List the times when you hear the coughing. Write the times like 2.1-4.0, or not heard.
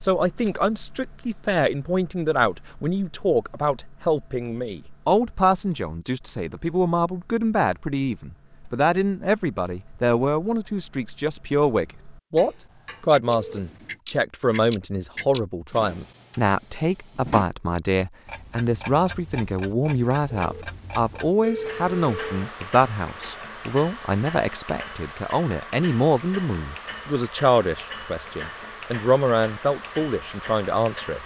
not heard.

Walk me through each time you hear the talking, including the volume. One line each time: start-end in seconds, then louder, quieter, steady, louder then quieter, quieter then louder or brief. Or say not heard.
0.0-31.2 steady.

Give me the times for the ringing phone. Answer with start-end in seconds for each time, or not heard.
13.2-14.0, 20.4-22.5.